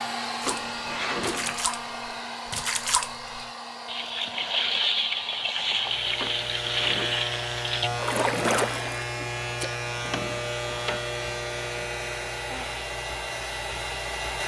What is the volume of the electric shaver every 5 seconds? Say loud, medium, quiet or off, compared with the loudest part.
off, loud, loud.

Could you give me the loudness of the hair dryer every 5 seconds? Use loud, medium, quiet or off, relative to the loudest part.
loud, medium, loud.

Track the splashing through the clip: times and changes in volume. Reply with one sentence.
You can hear the splashing from 0.4 to 9.7 s, getting louder.